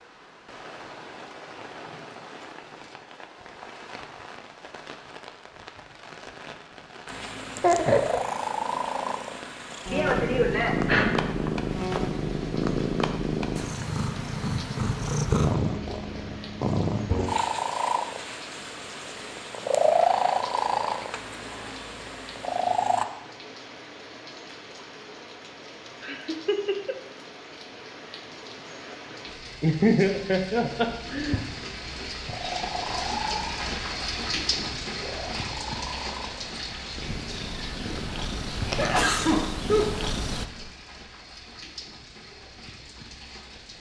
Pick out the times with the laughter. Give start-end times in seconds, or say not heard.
7.6-8.2, 26.0-26.9, 29.6-31.4.